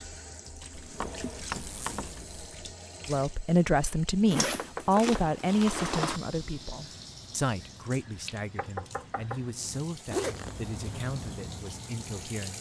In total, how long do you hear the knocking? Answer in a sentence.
You can hear the knocking for 3 seconds altogether.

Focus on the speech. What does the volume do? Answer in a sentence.
The volume of the speech goes down.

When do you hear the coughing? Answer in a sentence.
The coughing can't be heard in this clip.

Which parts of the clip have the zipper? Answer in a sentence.
You can hear the zipper from 0.7 to 2.5 s, from 4.2 to 6.2 s and from 10.1 to 10.9 s.